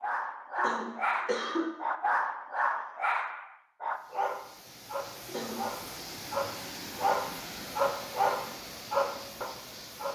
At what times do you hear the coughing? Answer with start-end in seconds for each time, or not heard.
0.6-1.7, 5.2-5.8.